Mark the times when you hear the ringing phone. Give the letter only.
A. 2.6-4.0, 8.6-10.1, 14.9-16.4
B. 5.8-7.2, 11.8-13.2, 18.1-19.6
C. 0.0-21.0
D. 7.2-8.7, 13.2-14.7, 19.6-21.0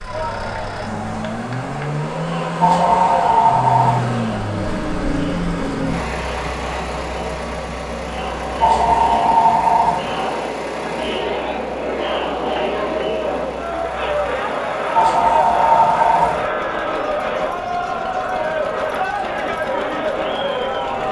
A.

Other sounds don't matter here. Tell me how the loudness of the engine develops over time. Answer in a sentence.
The volume of the engine goes down.